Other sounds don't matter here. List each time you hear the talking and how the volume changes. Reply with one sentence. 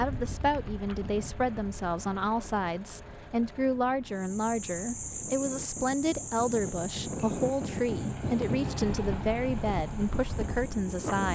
You can hear the talking from 0.0 to 11.3 s, at a steady volume.